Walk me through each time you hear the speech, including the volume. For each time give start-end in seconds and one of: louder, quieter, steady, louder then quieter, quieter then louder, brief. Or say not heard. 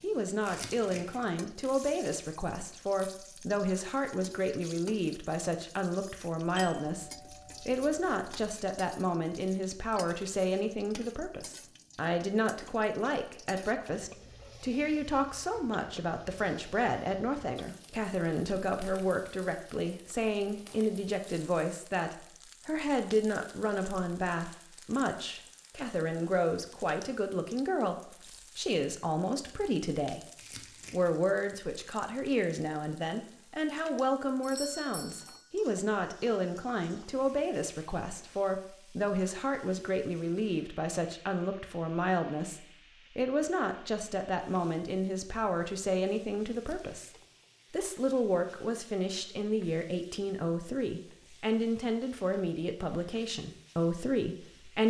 0.0-30.2 steady
30.9-47.1 steady
47.7-54.8 steady.